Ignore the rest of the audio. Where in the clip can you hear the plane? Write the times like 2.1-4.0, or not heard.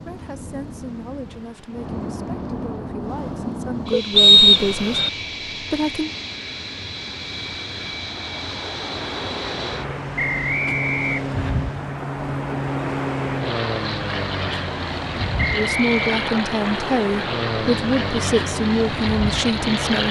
0.0-20.0.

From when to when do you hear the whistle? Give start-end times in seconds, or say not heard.
4.2-5.1, 10.2-11.6, 15.3-16.1.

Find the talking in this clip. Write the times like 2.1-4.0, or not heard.
0.0-6.1, 15.5-20.0.